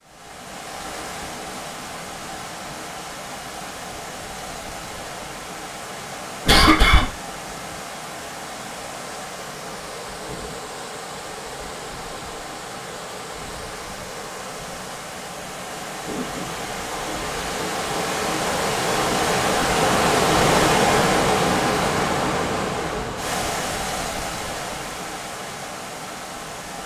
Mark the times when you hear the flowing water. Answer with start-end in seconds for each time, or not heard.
0.0-26.8.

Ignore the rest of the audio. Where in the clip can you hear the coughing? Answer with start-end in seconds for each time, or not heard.
6.5-7.0.